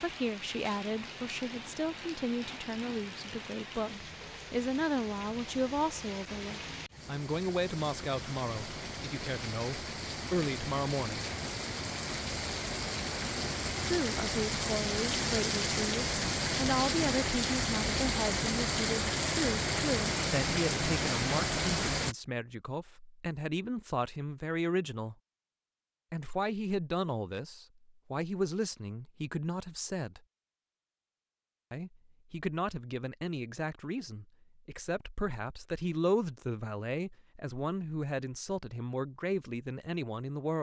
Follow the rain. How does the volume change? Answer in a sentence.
The loudness of the rain goes up.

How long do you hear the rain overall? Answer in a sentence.
The rain can be heard for 22 seconds in total.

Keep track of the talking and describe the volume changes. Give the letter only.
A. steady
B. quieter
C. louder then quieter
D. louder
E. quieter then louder
A.